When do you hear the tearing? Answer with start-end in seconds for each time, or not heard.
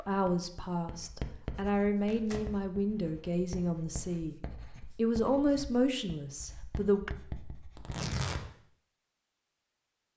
2.0-2.5, 7.8-8.4.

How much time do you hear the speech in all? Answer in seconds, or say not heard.
7 s.